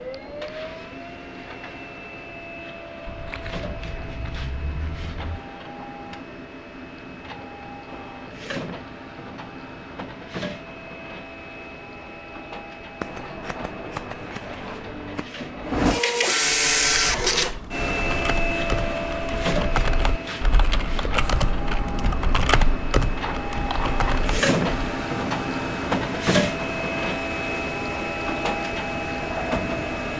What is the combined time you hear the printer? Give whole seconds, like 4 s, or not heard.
30 s.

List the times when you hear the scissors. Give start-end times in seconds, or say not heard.
3.0-5.4, 13.0-15.3, 23.2-24.0.